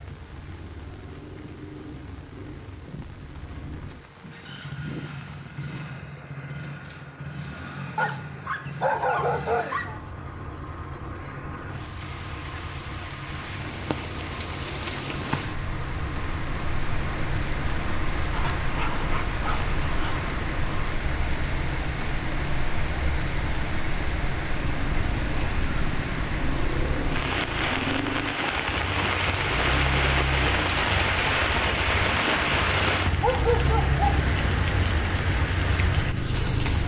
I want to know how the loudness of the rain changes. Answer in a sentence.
The volume of the rain goes up.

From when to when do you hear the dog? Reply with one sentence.
The dog can be heard from 8.0 to 10.0 s, from 18.3 to 20.3 s and from 33.2 to 34.2 s.